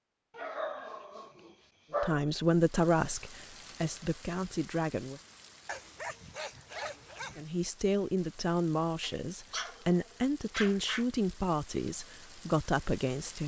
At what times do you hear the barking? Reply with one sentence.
You can hear the barking from 0.3 to 2.2 s, from 5.7 to 7.5 s and from 9.0 to 11.1 s.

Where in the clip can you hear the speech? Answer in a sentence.
The speech can be heard from 2.0 to 5.2 s and from 7.3 to 13.4 s.